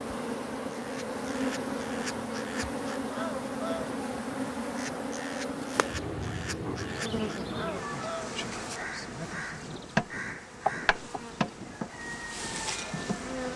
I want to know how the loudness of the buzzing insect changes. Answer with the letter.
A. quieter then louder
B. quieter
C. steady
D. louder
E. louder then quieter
C.